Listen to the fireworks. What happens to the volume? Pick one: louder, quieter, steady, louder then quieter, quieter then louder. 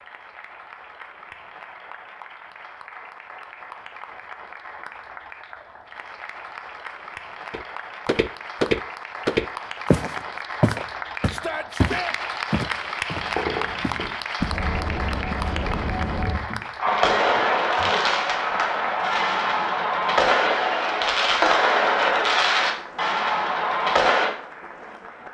louder.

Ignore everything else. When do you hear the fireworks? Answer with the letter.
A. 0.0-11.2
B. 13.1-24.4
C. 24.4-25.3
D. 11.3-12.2
B.